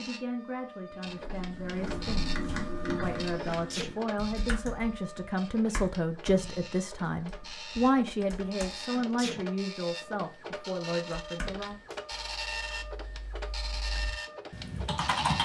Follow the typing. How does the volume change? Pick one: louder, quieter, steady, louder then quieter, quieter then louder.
quieter then louder.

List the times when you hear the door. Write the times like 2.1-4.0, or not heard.
not heard.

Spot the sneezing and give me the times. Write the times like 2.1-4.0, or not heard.
3.2-4.0, 8.7-9.4.